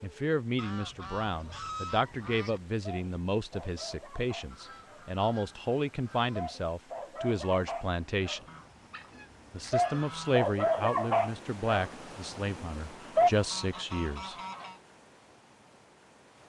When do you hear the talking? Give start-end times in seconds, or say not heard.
0.0-8.4, 9.5-14.3.